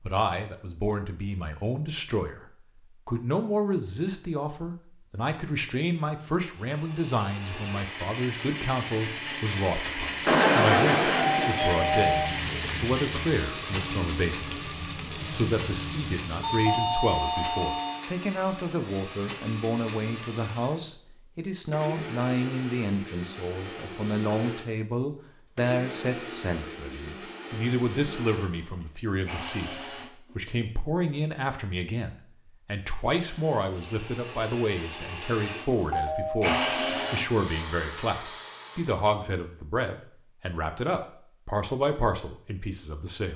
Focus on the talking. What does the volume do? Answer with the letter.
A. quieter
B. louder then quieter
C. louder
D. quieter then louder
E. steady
E.